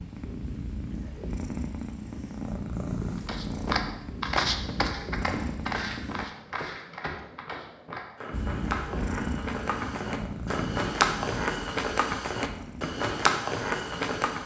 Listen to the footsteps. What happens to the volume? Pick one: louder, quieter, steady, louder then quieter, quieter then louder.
quieter then louder.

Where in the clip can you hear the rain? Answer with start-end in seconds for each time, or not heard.
not heard.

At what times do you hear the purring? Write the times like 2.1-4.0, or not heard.
0.0-6.2, 8.3-14.4.